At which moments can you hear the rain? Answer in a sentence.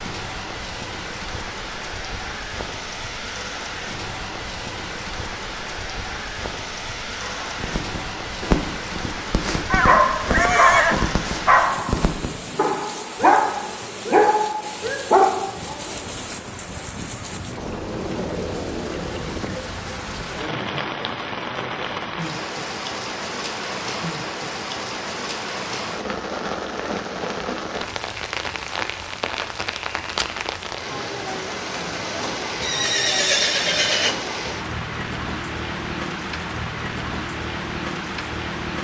You can hear the rain from 0.0 to 38.7 s.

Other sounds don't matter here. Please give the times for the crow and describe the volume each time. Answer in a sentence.
The crow can't be heard in this clip.